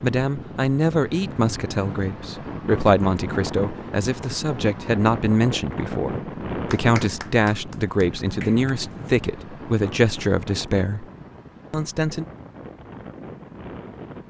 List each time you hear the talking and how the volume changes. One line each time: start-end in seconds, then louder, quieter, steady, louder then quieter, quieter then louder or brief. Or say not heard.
0.0-11.1 steady
11.7-12.2 brief.